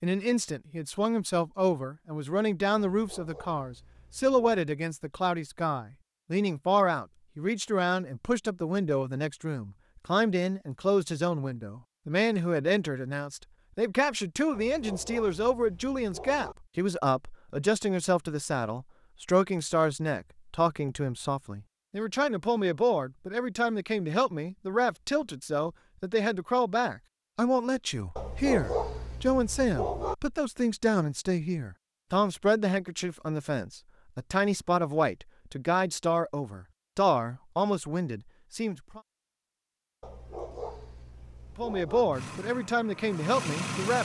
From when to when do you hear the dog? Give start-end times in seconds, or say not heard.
2.9-4.7, 14.5-16.6, 28.1-30.1, 40.0-42.0.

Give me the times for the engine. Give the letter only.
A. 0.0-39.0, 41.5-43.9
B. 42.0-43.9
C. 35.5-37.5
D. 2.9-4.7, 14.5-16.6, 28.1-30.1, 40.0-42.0
B.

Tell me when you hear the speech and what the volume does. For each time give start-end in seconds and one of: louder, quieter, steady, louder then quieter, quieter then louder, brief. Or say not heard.
0.0-39.0 steady
41.5-43.9 brief.